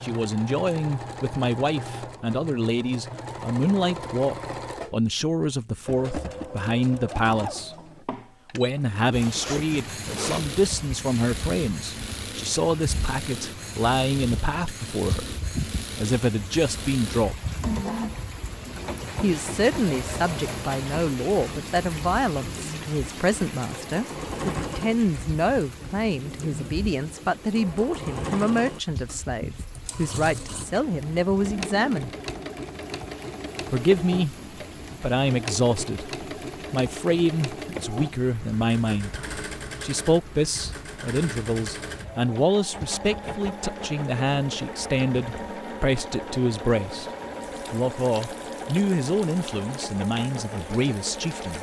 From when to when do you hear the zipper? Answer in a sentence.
You can hear the zipper from 9.2 to 10.6 s.